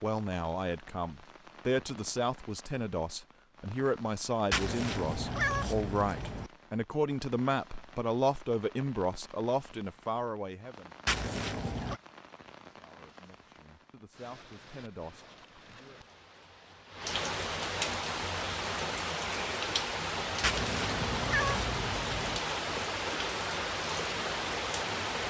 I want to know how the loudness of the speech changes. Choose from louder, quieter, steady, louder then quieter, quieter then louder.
quieter.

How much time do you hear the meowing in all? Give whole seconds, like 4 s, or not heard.
5 s.